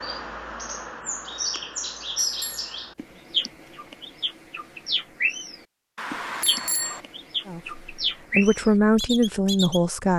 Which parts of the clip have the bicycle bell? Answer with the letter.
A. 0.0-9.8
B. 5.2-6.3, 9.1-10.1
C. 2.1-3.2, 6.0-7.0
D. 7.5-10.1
C.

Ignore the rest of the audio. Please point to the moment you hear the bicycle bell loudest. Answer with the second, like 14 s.
7 s.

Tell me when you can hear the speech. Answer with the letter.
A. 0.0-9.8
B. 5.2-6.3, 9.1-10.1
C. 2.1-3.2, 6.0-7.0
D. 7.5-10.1
D.